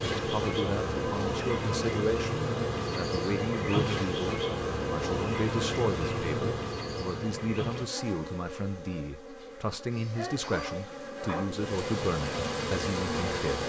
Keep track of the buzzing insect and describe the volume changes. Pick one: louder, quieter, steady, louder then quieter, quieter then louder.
quieter then louder.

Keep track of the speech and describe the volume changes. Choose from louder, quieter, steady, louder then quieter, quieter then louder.
steady.